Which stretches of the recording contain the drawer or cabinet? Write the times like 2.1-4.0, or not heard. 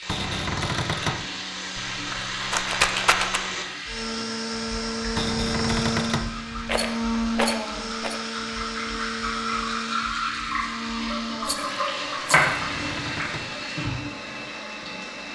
0.1-1.2, 5.2-6.3, 12.4-13.5.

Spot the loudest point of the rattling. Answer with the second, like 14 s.
3 s.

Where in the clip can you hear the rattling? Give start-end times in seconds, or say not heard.
1.8-3.4, 6.7-8.2, 11.4-12.6.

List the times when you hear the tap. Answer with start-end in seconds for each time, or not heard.
0.0-15.3.